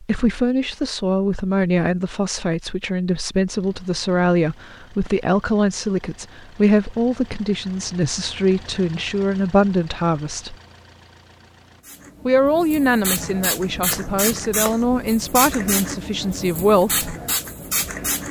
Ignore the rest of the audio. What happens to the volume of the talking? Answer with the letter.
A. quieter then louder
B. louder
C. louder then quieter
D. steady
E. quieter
D.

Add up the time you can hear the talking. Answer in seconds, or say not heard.
15 s.